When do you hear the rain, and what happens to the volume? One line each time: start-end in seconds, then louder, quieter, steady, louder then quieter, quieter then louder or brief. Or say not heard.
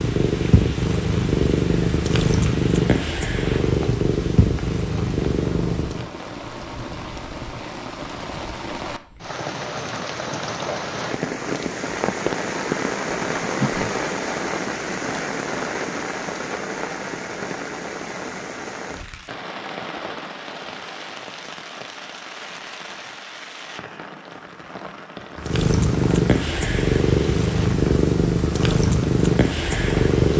0.0-30.2 louder then quieter.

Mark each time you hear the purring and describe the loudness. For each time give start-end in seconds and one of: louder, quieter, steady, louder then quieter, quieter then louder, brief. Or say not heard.
0.0-6.1 steady
25.4-30.3 steady.